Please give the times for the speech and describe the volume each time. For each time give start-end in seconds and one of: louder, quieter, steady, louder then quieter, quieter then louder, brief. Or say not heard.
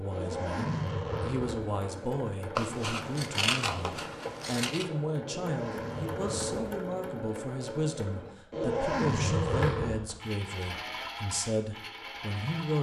0.0-12.7 steady.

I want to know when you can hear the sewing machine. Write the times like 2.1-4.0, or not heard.
0.0-12.7.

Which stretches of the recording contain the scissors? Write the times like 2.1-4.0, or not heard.
2.5-4.8.